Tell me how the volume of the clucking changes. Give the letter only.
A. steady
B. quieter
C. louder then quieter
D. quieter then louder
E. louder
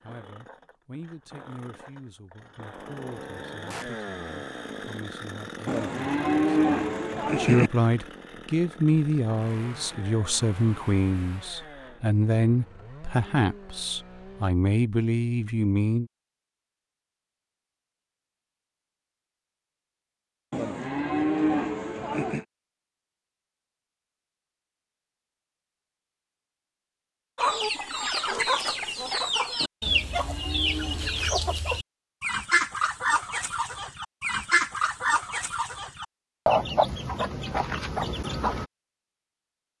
A.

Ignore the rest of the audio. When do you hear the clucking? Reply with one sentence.
You can hear the clucking from 27.4 to 38.6 s.